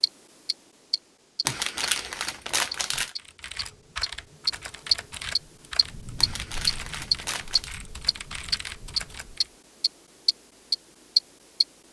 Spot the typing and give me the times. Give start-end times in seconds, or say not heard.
3.1-9.5.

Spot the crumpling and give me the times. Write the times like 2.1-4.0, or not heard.
1.4-3.1, 6.2-7.8.